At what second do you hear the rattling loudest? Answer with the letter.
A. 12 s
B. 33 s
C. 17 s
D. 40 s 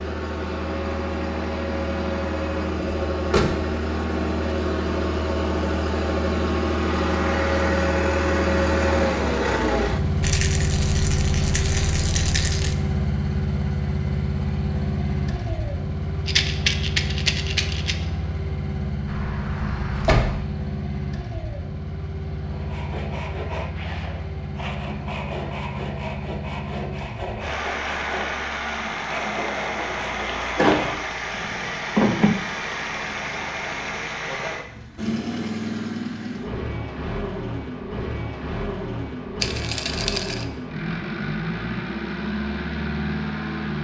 C.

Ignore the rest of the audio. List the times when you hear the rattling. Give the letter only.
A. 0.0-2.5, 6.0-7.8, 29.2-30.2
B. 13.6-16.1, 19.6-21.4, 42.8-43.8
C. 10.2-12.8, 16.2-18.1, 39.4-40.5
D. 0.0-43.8
C.